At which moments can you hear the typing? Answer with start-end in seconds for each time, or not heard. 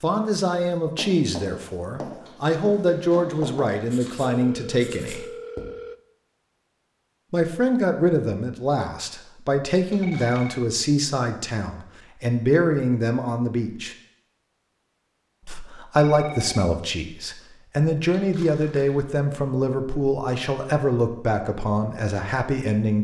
not heard.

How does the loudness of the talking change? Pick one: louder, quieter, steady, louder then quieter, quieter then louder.
steady.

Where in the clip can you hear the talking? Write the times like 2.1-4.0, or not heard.
0.0-5.2, 7.3-13.9, 15.4-23.0.